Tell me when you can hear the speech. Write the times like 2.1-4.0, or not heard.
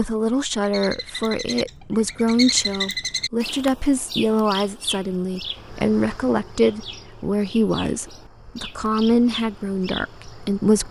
0.0-10.8.